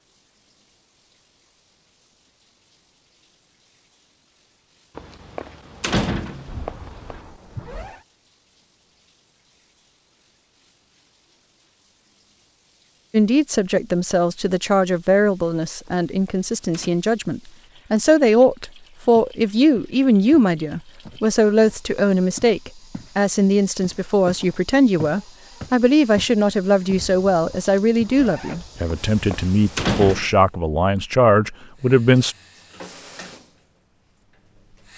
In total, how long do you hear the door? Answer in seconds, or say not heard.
5 s.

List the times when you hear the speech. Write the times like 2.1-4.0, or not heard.
13.1-32.4.